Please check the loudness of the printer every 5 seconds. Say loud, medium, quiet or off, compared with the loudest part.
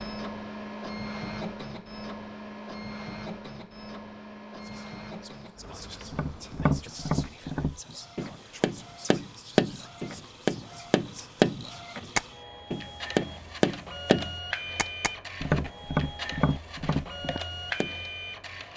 loud, medium, loud, loud.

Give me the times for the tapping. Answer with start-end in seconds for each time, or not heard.
6.1-17.9.